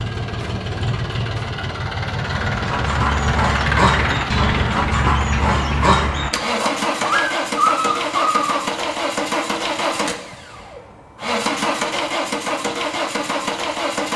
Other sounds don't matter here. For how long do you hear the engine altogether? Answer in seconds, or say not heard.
14 s.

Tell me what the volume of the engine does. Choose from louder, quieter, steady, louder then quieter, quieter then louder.
steady.